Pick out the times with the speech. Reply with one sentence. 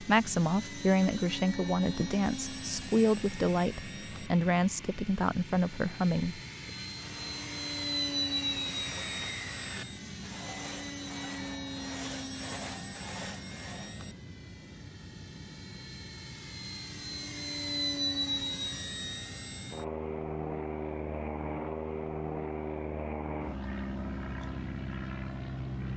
The speech can be heard from 0.0 to 6.4 s.